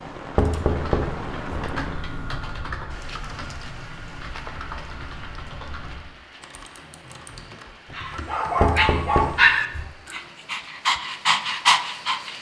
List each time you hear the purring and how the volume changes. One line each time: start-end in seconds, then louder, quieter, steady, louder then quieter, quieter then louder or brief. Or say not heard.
not heard.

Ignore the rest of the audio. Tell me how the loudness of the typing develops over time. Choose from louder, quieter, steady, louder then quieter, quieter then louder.
quieter.